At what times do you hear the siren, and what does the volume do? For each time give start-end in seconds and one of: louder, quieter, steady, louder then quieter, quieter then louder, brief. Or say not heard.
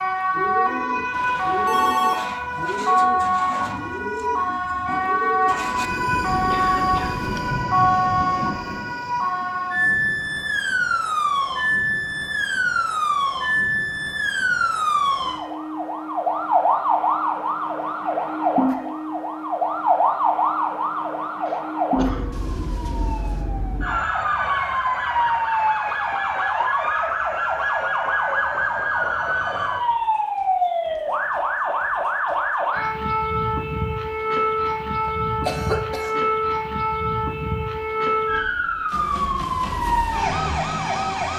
0.0-41.3 steady.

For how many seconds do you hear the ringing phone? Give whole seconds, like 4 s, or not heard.
2 s.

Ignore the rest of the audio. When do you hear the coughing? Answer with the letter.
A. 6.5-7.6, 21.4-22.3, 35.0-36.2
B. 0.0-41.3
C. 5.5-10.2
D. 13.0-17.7
A.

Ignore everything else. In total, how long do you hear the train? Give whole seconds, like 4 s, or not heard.
5 s.